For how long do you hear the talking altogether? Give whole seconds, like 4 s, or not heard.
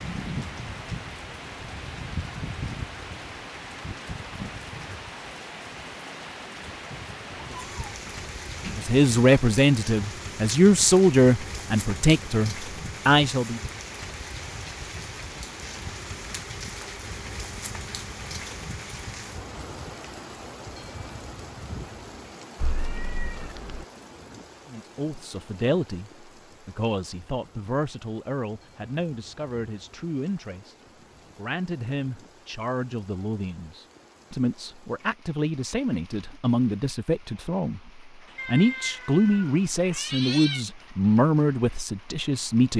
22 s.